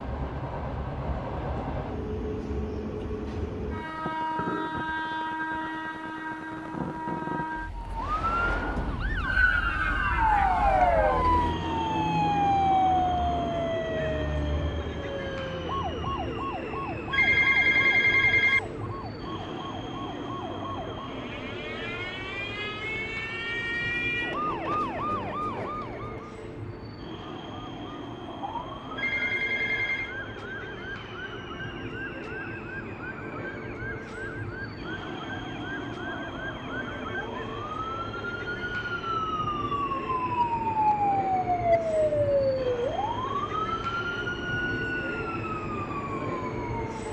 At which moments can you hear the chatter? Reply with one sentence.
You can't hear the chatter here.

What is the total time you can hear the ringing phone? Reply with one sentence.
You can hear the ringing phone for 3 seconds altogether.